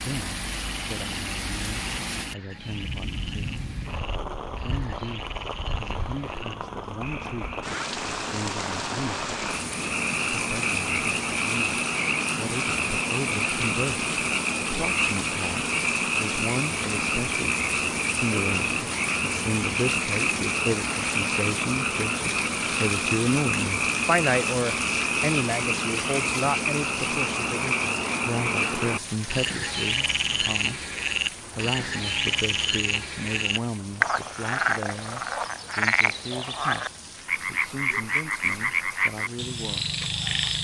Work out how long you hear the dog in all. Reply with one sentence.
The dog can't be heard in this clip.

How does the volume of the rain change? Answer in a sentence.
The loudness of the rain goes down.